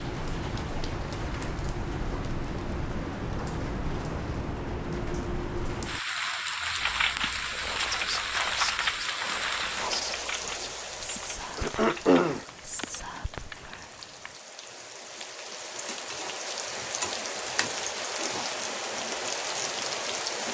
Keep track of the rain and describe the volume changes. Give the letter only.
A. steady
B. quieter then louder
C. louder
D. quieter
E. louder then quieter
B.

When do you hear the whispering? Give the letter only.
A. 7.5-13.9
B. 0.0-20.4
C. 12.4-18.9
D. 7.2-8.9
A.